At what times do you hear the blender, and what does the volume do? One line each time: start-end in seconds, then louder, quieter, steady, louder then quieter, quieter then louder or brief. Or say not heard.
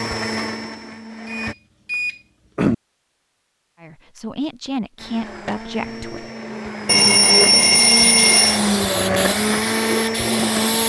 0.0-1.6 brief
5.0-10.8 louder.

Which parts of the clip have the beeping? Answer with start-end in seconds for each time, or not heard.
1.3-2.8, 6.8-8.6.